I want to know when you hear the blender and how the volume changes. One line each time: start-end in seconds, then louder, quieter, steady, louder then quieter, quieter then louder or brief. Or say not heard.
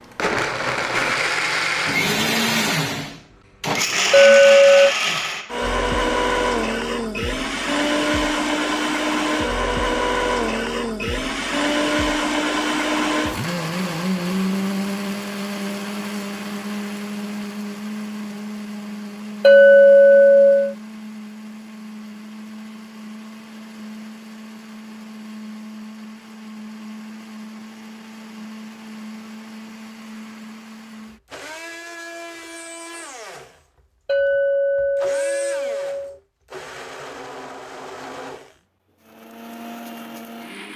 0.0-40.7 quieter.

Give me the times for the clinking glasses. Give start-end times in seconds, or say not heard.
4.1-5.0, 19.4-20.8, 34.0-36.1.